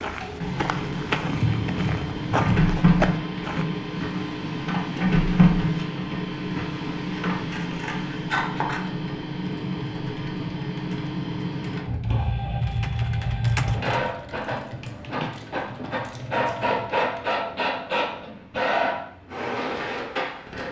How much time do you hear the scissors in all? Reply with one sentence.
You can hear the scissors for 5 seconds altogether.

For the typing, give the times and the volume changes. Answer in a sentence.
The typing can be heard from 9.4 to 17.4 s, getting louder then quieter.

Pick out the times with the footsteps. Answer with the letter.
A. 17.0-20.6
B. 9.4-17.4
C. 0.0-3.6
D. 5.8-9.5
C.